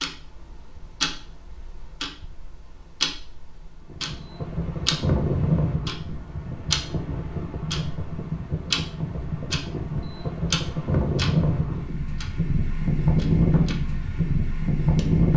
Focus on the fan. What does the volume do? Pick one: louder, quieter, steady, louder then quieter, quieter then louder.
quieter then louder.